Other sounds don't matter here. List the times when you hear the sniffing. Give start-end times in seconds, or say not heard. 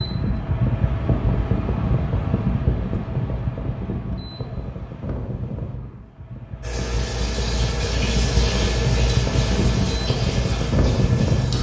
not heard.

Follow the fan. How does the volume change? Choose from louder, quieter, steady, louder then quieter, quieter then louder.
quieter then louder.